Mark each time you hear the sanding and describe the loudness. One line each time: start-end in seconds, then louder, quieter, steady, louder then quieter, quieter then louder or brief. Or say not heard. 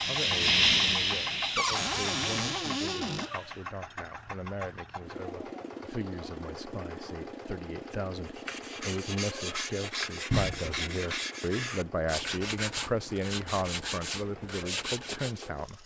8.2-15.5 steady.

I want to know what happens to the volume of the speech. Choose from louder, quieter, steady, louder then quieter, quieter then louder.
louder.